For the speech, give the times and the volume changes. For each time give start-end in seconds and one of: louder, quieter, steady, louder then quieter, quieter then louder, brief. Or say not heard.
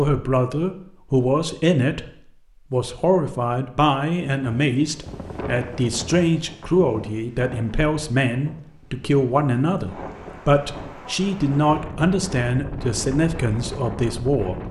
0.0-14.6 steady.